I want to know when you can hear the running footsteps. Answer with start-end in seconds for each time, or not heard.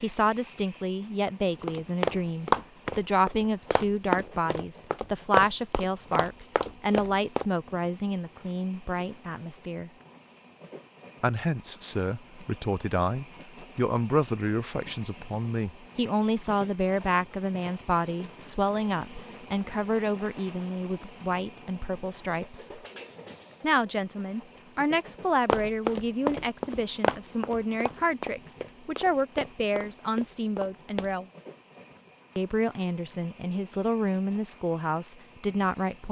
1.6-7.5, 25.4-31.1.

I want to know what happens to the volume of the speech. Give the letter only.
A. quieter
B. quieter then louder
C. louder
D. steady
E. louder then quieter
D.